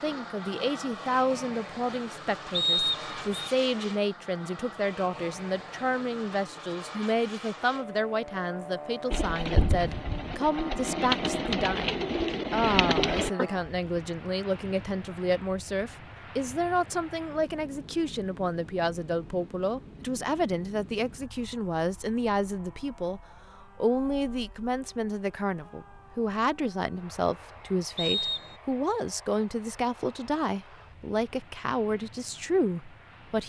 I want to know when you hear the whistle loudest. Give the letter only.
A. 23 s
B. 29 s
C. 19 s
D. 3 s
D.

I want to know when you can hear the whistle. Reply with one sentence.
The whistle can be heard from 2.5 to 3.5 s and from 27.9 to 28.6 s.